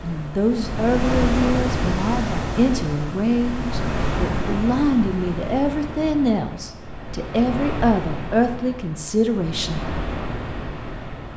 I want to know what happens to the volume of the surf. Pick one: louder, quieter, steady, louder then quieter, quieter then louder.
quieter.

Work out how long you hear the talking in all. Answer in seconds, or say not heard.
10 s.